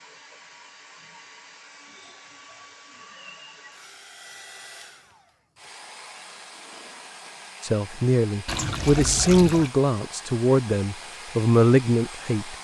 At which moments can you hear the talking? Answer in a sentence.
The talking can be heard from 7.6 to 12.6 s.